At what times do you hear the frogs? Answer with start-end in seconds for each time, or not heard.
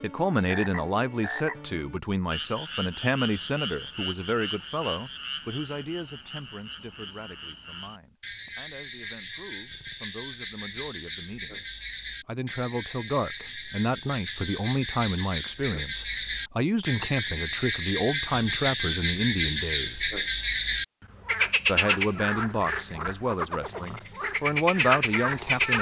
0.0-25.7.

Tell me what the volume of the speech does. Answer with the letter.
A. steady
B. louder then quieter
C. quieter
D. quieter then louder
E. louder
D.